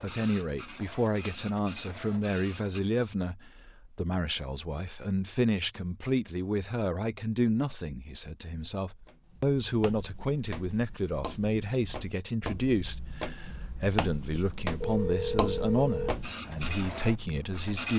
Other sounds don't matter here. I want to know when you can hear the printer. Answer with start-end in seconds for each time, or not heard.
0.0-2.8, 16.2-17.9.